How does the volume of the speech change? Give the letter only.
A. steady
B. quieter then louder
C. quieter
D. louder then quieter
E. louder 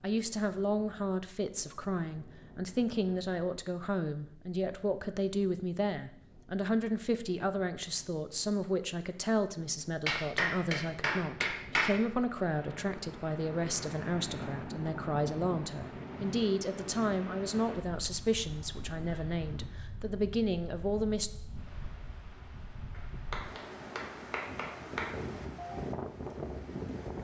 A.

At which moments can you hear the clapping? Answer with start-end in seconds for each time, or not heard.
10.1-12.0, 22.9-25.1.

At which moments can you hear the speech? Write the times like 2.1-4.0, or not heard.
0.0-21.3.